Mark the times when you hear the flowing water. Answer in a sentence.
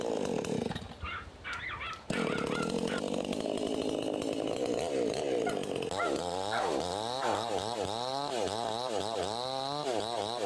The flowing water can't be heard in this clip.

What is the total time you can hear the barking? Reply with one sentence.
You can hear the barking for 4 seconds altogether.